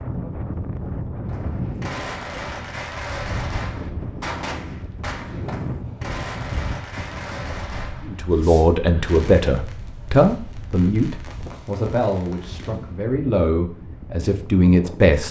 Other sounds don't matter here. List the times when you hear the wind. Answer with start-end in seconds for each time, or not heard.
0.0-15.2.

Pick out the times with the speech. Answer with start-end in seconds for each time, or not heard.
8.1-15.2.